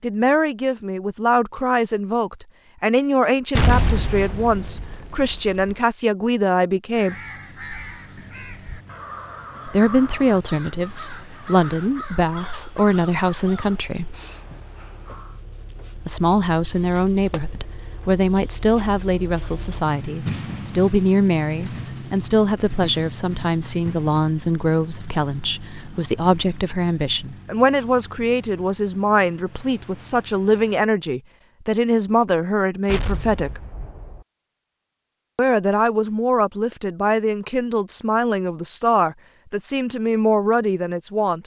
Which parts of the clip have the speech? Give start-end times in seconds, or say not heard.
0.0-7.2, 9.7-14.2, 15.9-33.6, 35.4-41.4.